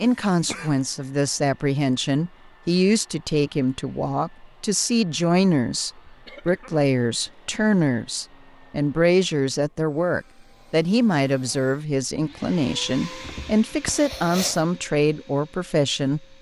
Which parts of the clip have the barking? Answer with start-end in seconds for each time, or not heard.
not heard.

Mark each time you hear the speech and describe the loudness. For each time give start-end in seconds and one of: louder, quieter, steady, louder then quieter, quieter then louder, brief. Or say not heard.
0.0-16.2 steady.